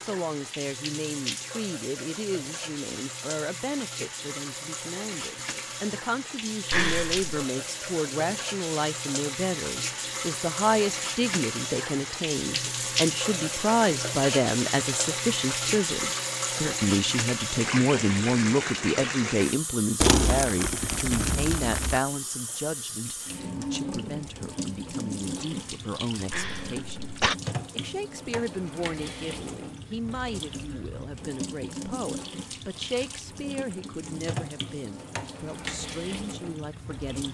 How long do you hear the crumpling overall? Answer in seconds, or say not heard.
2 s.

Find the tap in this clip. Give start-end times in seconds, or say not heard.
0.0-37.3.